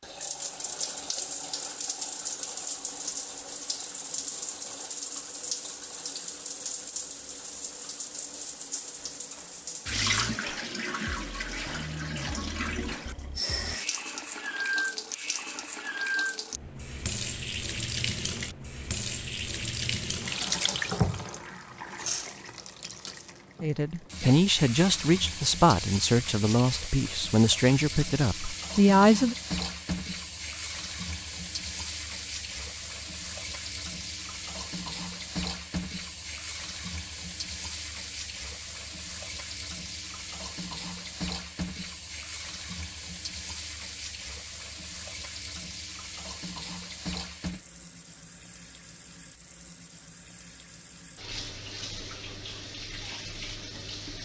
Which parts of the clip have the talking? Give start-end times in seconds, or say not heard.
23.6-29.4.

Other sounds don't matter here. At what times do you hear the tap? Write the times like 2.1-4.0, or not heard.
0.0-54.2.